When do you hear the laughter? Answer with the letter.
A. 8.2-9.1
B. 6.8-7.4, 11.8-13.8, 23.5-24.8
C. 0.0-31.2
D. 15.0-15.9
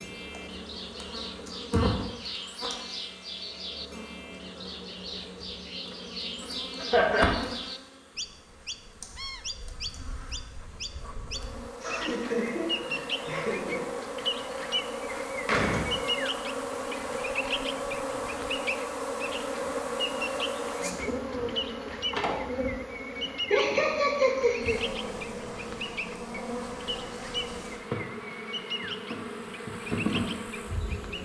B.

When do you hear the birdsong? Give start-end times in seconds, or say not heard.
0.0-31.2.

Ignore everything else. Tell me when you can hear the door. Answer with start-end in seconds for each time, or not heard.
15.0-15.9.